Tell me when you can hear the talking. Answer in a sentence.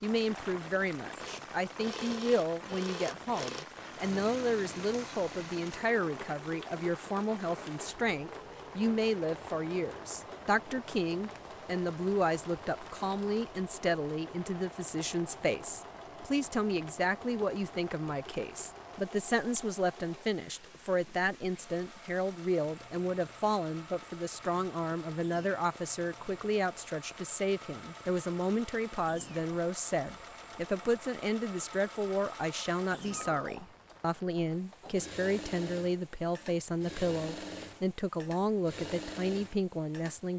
You can hear the talking from 0.0 to 40.3 s.